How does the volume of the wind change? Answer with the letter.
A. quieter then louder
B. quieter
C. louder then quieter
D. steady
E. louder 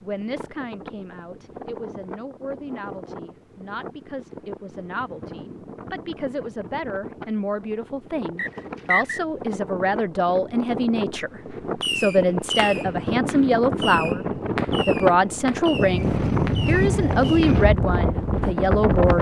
E.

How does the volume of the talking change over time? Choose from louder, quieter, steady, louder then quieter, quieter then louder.
louder.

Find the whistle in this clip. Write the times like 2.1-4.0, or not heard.
8.3-9.2.